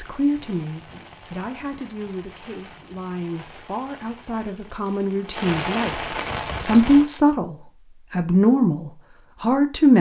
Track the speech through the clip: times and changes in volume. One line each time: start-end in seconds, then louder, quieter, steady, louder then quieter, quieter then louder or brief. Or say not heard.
0.0-9.9 louder.